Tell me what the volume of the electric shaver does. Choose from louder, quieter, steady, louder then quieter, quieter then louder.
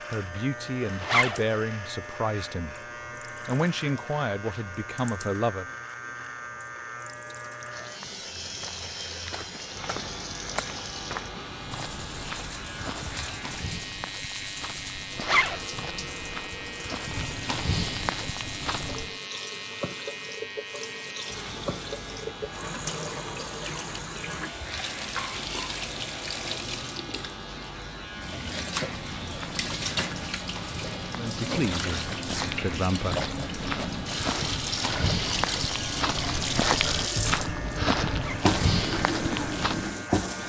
steady.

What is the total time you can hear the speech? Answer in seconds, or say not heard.
7 s.